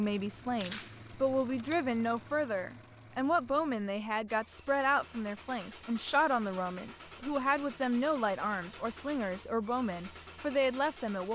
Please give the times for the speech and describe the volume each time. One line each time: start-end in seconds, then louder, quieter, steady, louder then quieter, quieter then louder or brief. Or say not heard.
0.0-11.3 steady.